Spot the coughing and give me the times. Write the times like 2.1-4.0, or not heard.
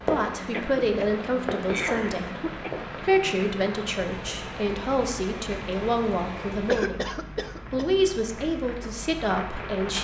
0.5-2.8, 6.7-7.9.